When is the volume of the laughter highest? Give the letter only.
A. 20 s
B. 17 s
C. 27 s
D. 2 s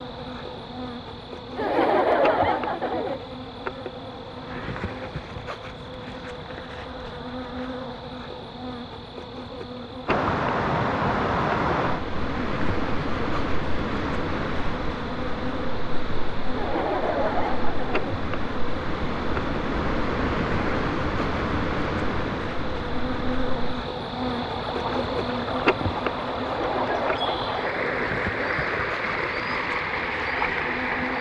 D.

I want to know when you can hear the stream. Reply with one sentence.
You can hear the stream from 10.1 to 31.1 s.